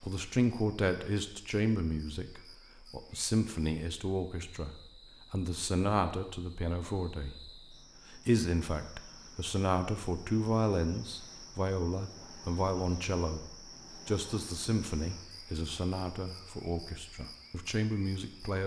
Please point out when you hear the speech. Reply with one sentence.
You can hear the speech from 0.0 to 7.5 s and from 8.1 to 18.6 s.